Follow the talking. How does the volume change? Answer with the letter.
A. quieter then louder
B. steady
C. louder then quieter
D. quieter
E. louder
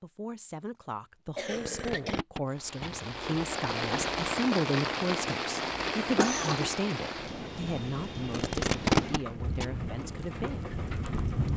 C.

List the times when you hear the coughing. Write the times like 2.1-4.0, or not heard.
1.4-2.2, 6.2-6.7.